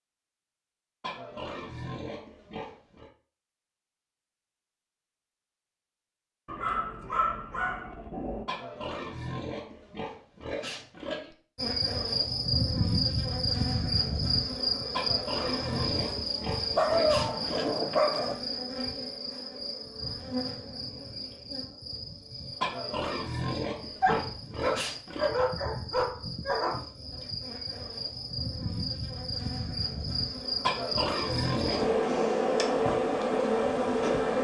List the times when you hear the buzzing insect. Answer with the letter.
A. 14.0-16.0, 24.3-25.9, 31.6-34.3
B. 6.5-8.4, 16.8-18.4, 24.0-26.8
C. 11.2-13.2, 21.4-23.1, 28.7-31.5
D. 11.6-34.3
D.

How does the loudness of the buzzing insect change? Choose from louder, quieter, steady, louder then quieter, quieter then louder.
quieter then louder.